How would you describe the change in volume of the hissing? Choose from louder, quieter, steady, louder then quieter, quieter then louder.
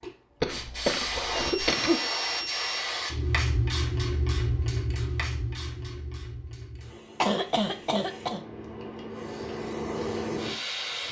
quieter then louder.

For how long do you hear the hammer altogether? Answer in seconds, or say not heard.
not heard.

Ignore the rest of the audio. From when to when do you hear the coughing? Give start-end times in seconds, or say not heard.
0.4-2.0, 7.2-8.4.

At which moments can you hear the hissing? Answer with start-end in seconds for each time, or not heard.
0.0-11.0.